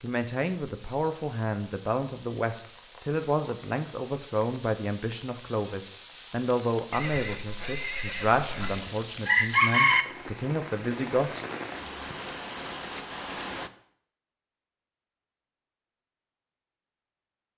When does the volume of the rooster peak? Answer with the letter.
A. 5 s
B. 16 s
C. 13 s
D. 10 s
D.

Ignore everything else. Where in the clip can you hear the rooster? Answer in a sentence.
The rooster can be heard from 8.3 to 10.1 s.